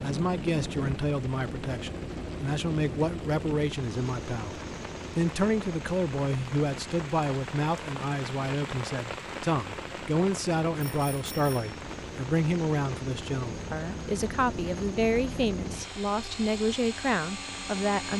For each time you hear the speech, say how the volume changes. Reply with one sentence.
You can hear the speech from 0.0 to 18.1 s, at a steady volume.